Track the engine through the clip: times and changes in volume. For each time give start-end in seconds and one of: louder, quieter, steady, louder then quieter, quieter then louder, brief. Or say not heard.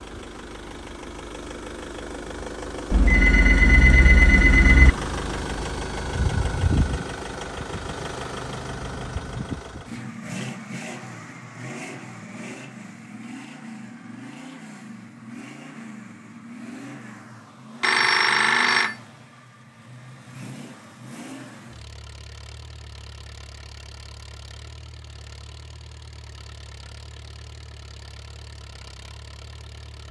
0.0-30.0 quieter.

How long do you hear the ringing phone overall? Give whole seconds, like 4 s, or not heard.
3 s.